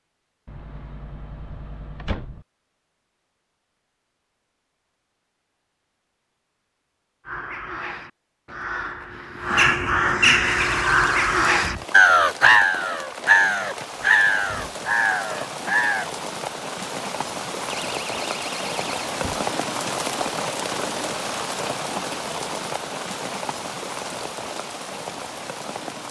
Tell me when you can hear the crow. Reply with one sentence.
The crow can be heard from 7.2 to 16.1 s.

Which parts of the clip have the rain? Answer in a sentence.
The rain can be heard from 10.4 to 26.0 s.